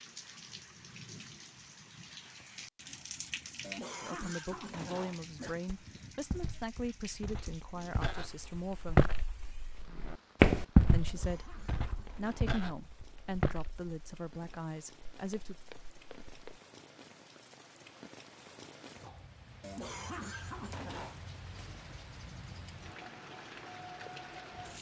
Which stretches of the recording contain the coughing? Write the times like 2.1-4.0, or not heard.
3.6-5.5, 11.0-12.6, 19.6-21.2.